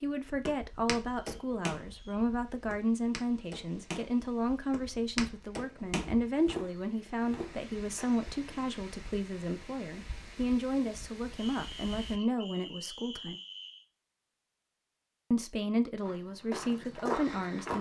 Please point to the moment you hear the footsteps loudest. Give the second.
17 s.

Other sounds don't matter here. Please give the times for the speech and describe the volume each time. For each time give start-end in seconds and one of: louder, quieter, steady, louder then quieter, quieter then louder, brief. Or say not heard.
0.0-13.3 steady
15.3-17.7 brief.